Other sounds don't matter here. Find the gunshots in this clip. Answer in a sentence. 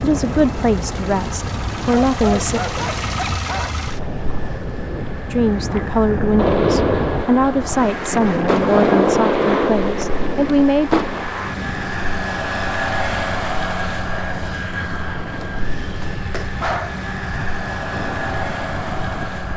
You can hear the gunshots from 6.3 to 11.2 s.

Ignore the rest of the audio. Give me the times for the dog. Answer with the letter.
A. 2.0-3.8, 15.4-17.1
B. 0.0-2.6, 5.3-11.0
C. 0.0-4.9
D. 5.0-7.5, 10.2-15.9
A.